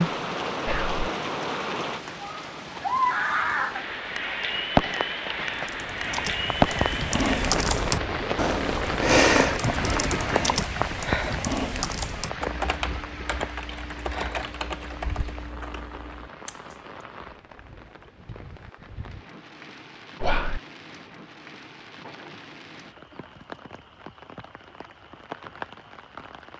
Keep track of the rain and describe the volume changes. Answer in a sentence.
The loudness of the rain goes down.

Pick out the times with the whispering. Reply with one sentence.
The whispering can be heard from 0.7 to 1.1 s, from 15.0 to 15.4 s and from 20.2 to 20.6 s.